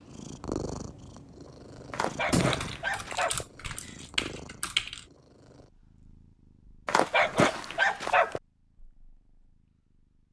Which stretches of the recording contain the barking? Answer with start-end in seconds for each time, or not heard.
1.9-3.5, 6.8-8.4.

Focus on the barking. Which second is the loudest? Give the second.
7 s.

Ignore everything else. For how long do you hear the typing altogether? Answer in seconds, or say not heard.
3 s.